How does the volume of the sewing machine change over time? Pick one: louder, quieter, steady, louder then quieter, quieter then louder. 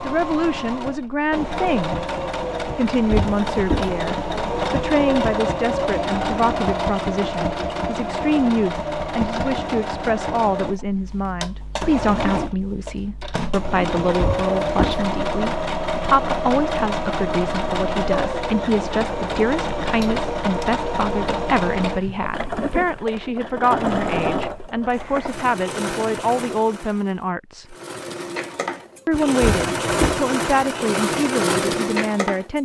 steady.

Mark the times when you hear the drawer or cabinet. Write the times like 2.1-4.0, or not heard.
3.1-3.9, 14.2-15.0, 29.4-30.2.